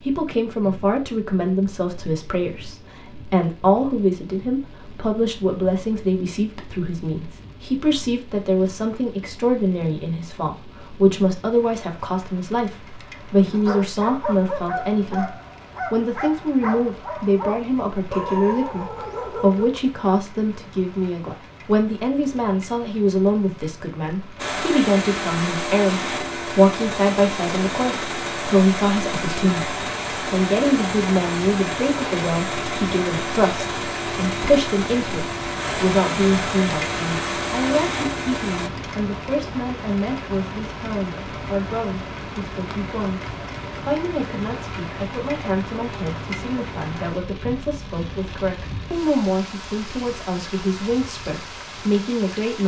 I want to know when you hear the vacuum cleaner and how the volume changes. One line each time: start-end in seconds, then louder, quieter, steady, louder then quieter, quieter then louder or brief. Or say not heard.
24.4-38.7 steady.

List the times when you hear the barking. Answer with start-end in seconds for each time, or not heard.
13.3-19.7.